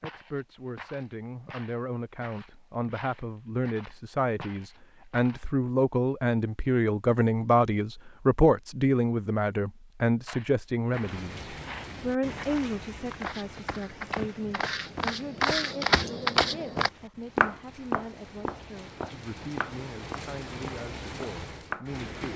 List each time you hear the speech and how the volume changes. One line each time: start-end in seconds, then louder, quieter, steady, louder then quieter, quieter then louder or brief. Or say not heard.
0.0-22.3 louder then quieter.